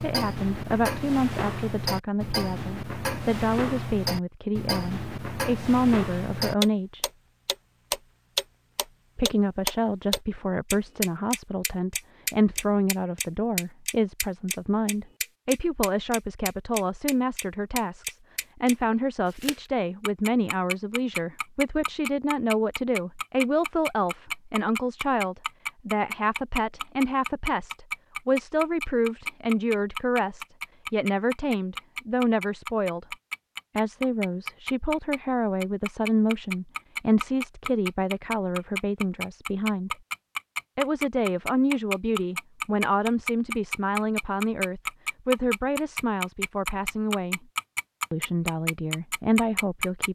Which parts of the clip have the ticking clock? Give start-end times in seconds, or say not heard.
0.0-50.0.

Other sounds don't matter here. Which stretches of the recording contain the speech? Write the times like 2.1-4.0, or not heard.
0.0-7.0, 9.2-33.1, 33.8-40.0, 40.8-47.4, 48.1-50.0.